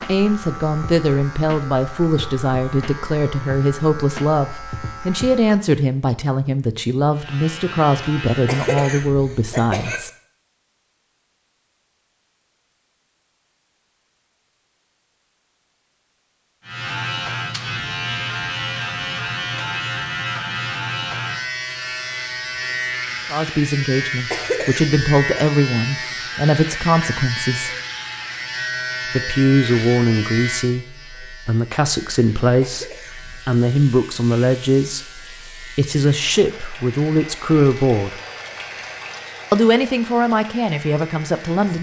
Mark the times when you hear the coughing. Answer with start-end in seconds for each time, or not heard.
8.4-10.0, 24.3-25.4, 32.6-33.5.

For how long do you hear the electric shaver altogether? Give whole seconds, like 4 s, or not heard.
33 s.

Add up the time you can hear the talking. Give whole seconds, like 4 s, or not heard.
26 s.